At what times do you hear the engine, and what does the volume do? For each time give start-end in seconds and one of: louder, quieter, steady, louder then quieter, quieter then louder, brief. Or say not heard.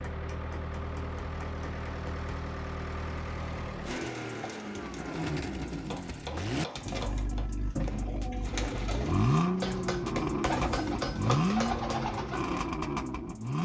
0.0-13.5 louder.